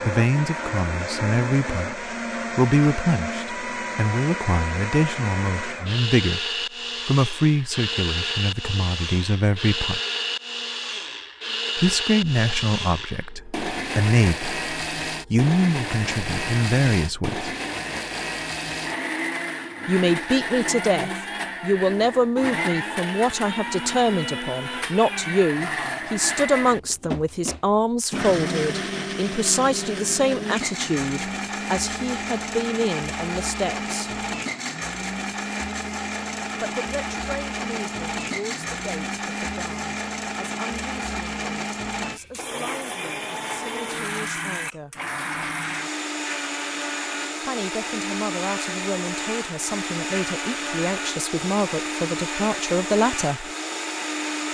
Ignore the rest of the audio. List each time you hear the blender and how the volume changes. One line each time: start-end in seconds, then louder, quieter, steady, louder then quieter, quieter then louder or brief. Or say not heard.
0.0-54.5 steady.